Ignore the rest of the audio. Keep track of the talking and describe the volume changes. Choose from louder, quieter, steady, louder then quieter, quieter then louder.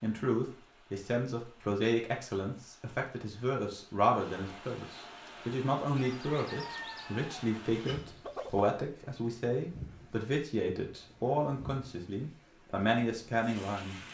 steady.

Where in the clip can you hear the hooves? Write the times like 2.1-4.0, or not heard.
not heard.